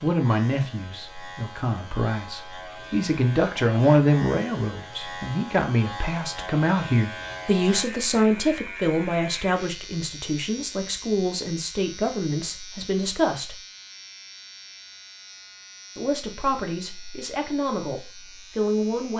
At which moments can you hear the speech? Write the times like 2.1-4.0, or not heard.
0.0-13.6, 15.9-19.1.